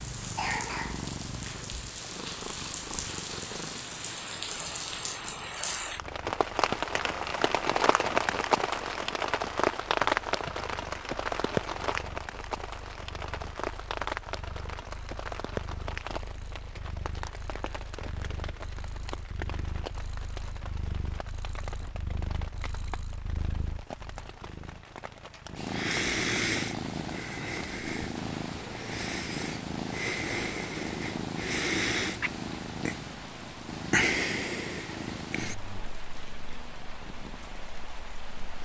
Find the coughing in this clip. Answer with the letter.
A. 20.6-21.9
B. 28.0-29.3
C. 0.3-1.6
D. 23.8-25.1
C.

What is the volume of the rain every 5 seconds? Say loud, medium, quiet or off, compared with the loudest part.
medium, loud, loud, medium, quiet, quiet, quiet, quiet.